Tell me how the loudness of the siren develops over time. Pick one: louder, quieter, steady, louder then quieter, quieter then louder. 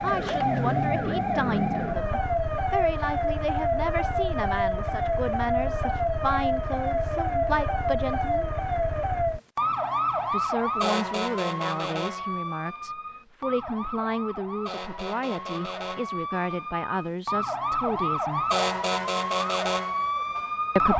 quieter then louder.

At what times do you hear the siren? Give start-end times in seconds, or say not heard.
0.0-20.9.